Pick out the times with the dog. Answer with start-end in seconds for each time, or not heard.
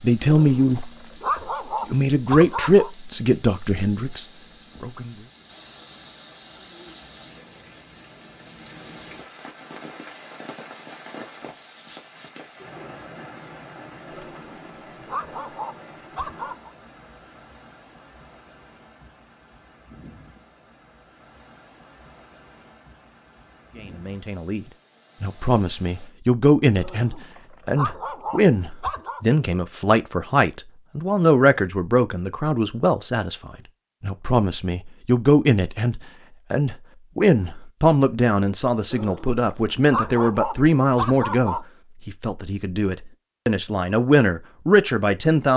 0.2-2.9, 14.1-16.7, 26.8-29.2, 38.9-41.6.